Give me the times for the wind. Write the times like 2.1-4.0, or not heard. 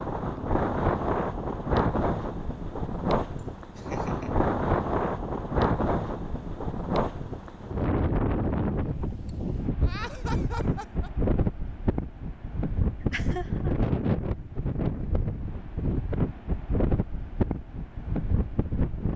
0.0-19.1.